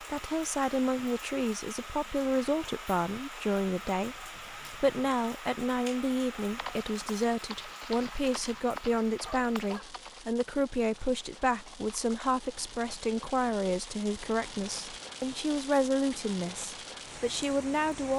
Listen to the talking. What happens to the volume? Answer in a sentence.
The volume of the talking stays about the same.